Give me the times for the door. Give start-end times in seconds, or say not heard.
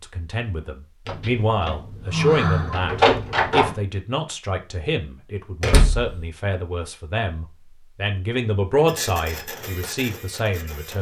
1.1-3.8, 5.6-6.2.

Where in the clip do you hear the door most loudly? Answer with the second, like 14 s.
3 s.